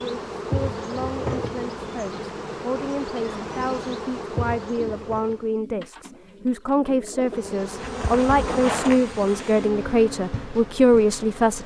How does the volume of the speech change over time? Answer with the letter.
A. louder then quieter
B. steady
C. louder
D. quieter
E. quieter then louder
C.